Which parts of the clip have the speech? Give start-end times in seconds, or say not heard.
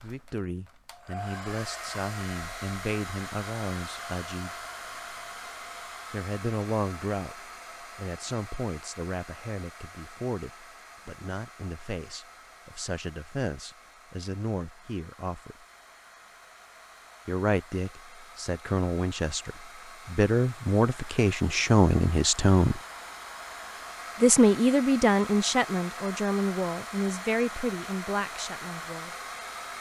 0.0-4.5, 6.1-15.6, 17.2-22.8, 24.2-29.1.